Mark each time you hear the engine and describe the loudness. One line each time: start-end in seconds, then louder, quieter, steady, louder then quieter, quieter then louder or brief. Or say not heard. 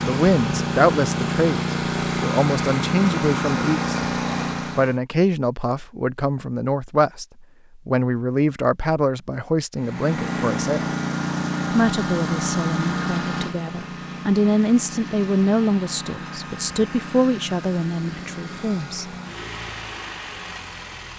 0.0-5.0 steady
9.8-21.1 quieter.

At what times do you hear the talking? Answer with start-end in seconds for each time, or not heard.
0.0-4.0, 4.8-10.9, 11.7-19.1.